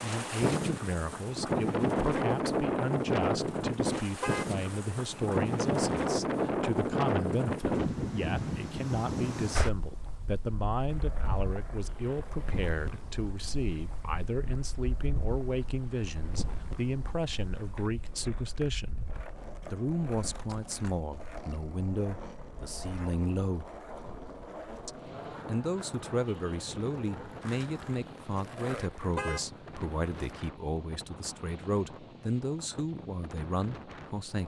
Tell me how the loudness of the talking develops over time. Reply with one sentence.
The volume of the talking stays about the same.